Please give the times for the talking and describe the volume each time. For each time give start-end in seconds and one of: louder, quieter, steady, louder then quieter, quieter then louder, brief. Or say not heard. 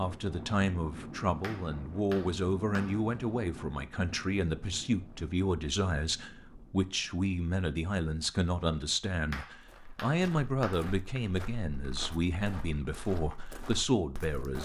0.0-14.5 steady.